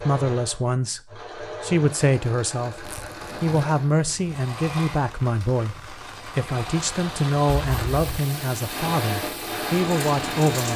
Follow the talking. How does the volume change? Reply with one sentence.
The loudness of the talking stays about the same.